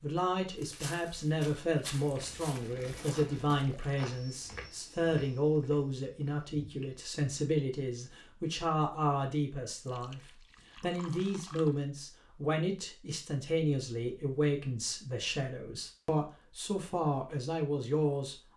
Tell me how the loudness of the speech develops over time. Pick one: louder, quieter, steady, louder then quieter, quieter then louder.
steady.